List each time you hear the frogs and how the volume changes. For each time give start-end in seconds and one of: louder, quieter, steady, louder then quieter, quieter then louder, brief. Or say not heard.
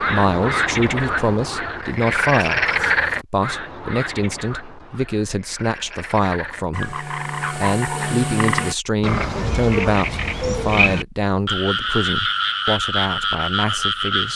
0.0-14.3 quieter then louder.